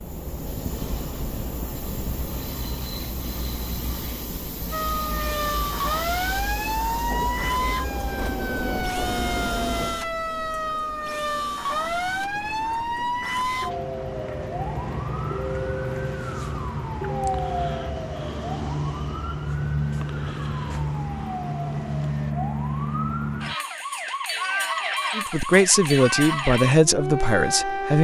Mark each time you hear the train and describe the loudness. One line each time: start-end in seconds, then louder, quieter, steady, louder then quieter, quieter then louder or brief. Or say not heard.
0.0-22.4 quieter.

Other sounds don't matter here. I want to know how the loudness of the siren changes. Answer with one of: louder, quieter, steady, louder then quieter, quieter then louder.
steady.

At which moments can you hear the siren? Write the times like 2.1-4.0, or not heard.
4.7-27.9.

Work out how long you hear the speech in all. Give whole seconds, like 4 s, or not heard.
3 s.